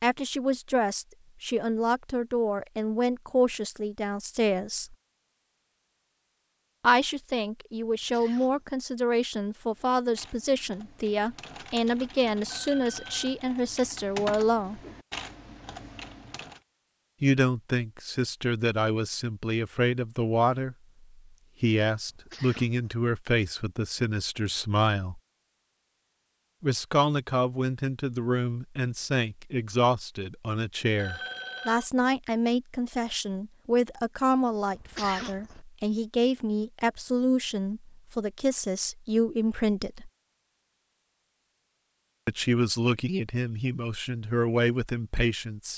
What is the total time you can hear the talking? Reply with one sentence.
The talking can be heard for 37 seconds in total.